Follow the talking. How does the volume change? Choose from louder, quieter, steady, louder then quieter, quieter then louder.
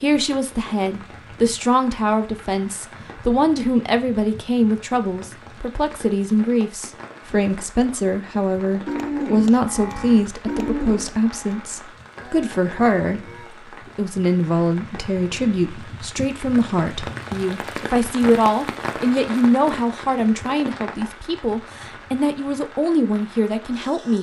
steady.